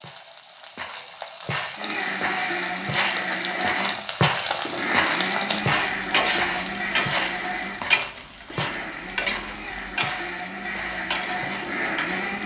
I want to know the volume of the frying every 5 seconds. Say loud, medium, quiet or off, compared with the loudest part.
loud, loud, medium.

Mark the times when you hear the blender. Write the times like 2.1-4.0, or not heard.
1.8-12.4.